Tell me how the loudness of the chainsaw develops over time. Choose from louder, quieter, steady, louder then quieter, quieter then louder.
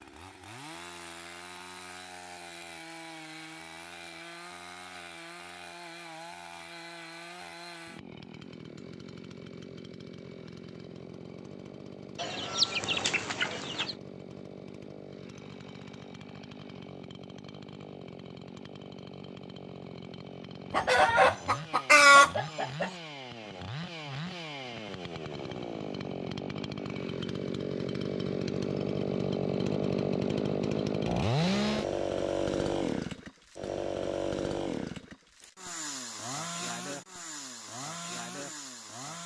louder.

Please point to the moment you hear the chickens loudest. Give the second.
22 s.